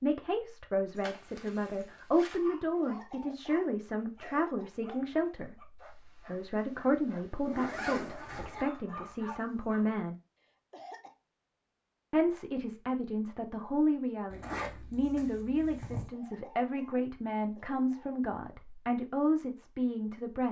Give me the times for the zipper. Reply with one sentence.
The zipper can be heard from 0.9 to 2.4 s, from 7.5 to 8.7 s and from 14.3 to 16.1 s.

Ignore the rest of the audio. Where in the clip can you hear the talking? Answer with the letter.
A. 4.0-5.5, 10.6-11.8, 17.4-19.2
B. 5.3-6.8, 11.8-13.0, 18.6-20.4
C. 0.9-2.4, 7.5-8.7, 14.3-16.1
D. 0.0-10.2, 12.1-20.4
D.